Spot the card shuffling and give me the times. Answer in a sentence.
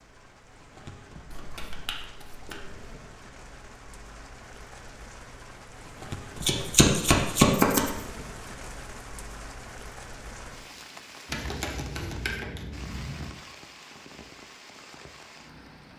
The card shuffling can be heard from 1.3 to 3.0 s, from 6.3 to 7.9 s and from 11.2 to 13.3 s.